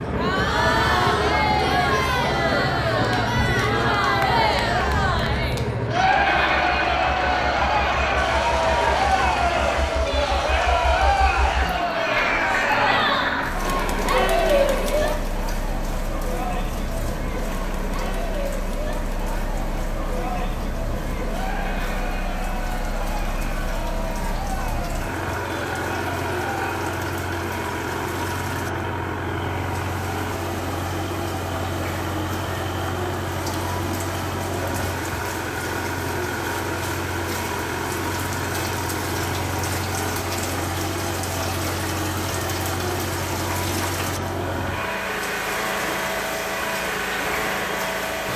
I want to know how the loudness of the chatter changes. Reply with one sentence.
The loudness of the chatter goes down.